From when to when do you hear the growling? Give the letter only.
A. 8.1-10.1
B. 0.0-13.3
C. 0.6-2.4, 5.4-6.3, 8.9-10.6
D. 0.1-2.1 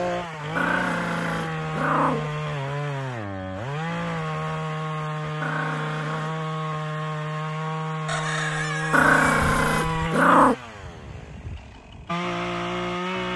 C.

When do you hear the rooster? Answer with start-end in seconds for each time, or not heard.
8.1-10.1.